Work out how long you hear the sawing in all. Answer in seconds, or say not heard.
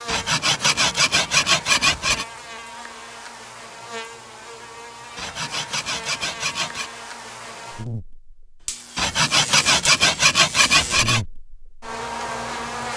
6 s.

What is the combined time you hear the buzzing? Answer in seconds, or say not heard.
13 s.